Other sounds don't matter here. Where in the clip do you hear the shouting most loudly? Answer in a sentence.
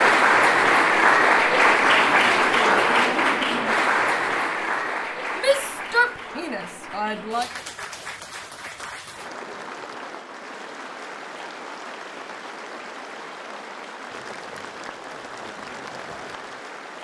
The volume of the shouting peaks at 6 seconds.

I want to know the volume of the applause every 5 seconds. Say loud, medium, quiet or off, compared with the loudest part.
loud, quiet, quiet, quiet.